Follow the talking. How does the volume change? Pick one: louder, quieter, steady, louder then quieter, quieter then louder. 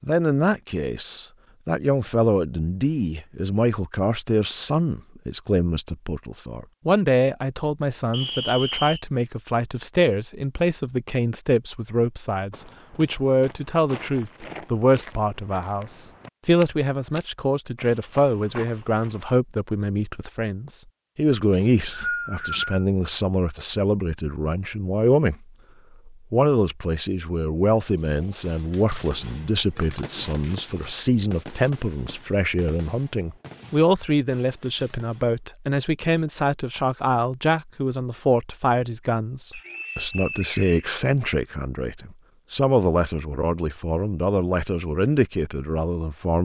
steady.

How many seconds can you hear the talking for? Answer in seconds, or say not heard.
46 s.